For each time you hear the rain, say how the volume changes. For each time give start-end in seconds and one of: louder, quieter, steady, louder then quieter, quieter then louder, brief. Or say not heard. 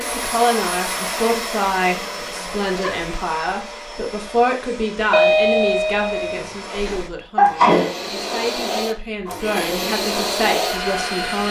not heard.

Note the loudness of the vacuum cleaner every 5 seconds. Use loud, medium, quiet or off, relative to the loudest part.
medium, medium, loud.